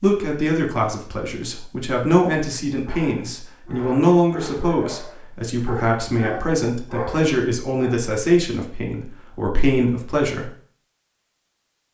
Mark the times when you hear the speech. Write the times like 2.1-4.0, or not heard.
0.0-10.5.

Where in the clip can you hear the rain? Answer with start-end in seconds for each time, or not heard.
not heard.